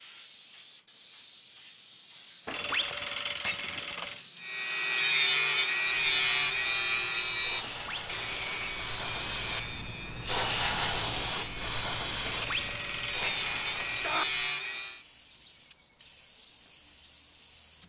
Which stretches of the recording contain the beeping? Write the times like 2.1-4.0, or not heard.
2.5-4.2, 7.6-8.8, 12.2-14.2.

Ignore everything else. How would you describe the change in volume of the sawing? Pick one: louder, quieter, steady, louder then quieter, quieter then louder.
quieter then louder.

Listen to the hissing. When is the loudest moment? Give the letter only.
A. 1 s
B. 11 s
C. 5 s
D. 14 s
B.